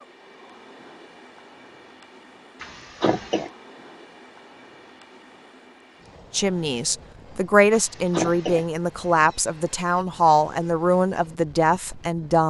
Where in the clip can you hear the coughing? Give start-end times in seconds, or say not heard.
2.6-3.5, 7.7-8.7.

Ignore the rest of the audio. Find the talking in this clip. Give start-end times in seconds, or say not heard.
6.3-12.4.